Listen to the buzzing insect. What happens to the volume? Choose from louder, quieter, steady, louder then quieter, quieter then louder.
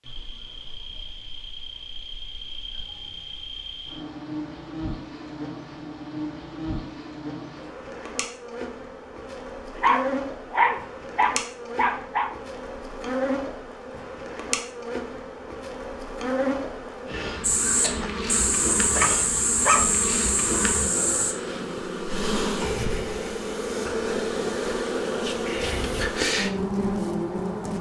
louder.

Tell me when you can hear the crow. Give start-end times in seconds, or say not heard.
17.4-21.4.